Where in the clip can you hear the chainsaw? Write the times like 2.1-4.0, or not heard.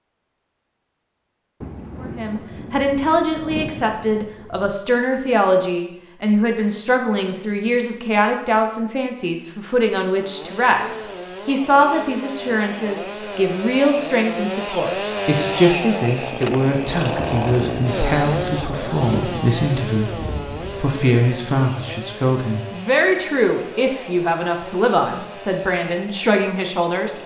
10.1-27.2.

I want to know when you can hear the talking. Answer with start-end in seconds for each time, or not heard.
2.0-27.2.